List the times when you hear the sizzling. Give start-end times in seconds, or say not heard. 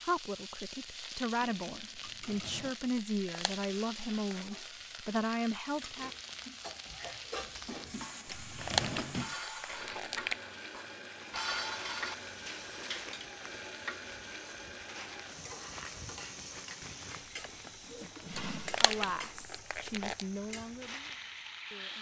0.0-21.9.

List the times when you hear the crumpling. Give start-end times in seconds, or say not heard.
3.0-4.6, 8.4-10.3, 18.4-20.2.